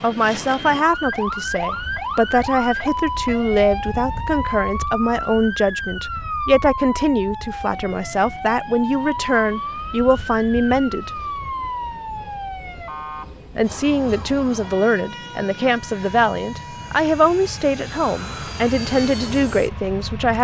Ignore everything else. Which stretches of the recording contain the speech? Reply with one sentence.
You can hear the speech from 0.0 to 11.2 s and from 13.6 to 20.3 s.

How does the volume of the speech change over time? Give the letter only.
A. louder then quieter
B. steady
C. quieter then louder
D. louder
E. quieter
B.